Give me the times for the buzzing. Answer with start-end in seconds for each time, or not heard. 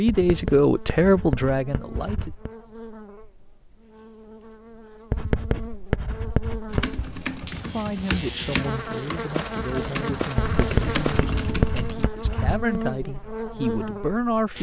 0.1-14.5.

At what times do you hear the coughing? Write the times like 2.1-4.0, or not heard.
not heard.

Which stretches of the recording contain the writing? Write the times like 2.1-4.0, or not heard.
0.1-2.5, 5.1-7.1, 10.3-12.8.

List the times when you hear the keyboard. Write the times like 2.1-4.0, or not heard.
6.7-12.1.